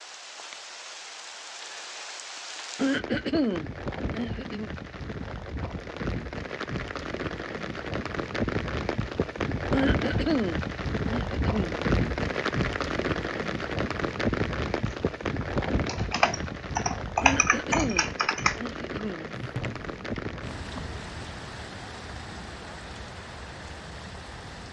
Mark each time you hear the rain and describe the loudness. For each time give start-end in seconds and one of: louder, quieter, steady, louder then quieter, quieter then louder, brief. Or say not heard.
0.0-24.6 louder then quieter.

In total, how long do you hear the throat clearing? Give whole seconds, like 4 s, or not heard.
6 s.